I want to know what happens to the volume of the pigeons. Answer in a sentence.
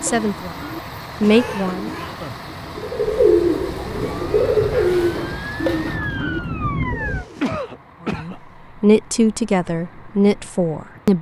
The loudness of the pigeons goes up, then down.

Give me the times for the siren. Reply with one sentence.
You can hear the siren from 4.1 to 7.2 s.